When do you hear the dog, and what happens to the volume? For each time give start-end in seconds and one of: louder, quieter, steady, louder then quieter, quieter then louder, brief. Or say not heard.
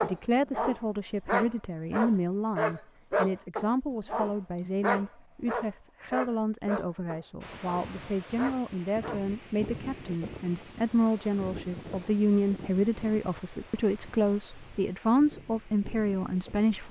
0.0-9.2 quieter.